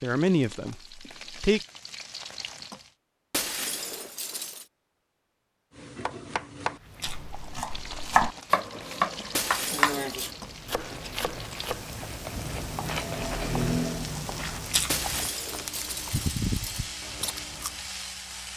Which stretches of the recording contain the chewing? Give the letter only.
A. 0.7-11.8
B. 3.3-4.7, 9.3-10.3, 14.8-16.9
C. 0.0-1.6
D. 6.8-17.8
D.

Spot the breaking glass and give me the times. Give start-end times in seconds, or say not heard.
3.3-4.7, 9.3-10.3, 14.8-16.9.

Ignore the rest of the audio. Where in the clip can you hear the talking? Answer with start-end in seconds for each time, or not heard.
0.0-1.6.